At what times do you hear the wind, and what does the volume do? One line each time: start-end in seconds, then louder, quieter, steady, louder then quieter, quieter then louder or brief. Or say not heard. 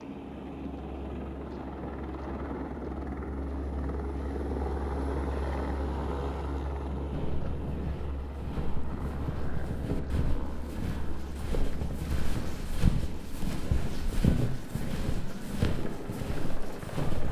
0.0-16.9 steady.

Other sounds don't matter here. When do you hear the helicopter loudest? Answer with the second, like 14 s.
5 s.